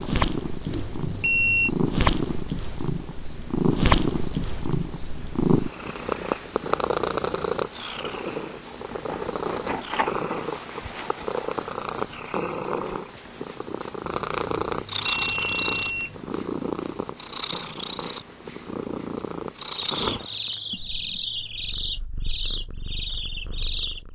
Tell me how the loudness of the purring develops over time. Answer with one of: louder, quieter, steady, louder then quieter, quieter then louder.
quieter.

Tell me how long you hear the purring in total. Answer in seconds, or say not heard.
24 s.